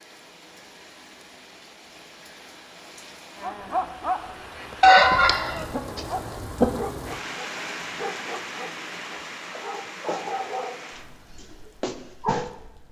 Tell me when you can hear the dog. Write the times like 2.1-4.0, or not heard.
3.4-12.5.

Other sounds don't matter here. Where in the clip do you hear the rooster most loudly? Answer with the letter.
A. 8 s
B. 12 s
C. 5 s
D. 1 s
C.